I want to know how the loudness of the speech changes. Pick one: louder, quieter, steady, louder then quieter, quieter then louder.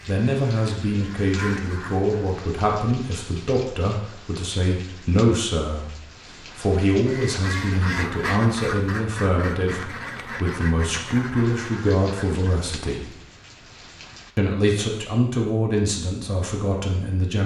steady.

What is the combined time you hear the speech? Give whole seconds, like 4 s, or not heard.
16 s.